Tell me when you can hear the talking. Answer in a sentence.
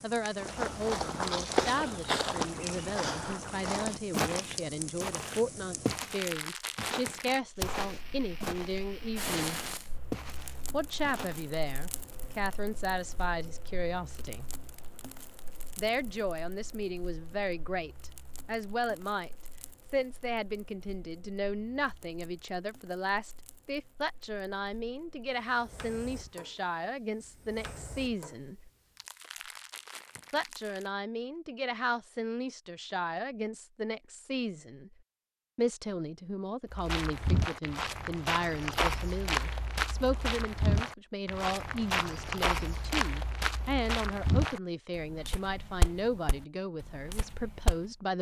You can hear the talking from 0.0 to 9.7 s, from 10.7 to 14.5 s, from 15.8 to 19.3 s, from 19.9 to 28.7 s, from 30.3 to 35.0 s and from 35.5 to 48.1 s.